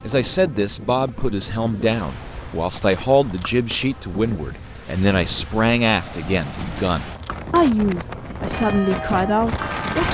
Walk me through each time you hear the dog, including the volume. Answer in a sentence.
You can't hear the dog here.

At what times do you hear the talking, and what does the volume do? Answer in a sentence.
The talking can be heard from 0.0 to 10.0 s, at a steady volume.